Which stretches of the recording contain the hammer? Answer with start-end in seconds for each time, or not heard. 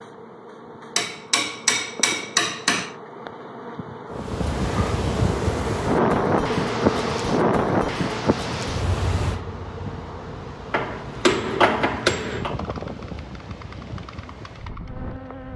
0.9-2.9, 10.7-12.6.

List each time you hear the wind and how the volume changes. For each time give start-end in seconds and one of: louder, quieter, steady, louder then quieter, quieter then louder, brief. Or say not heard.
4.1-15.5 quieter.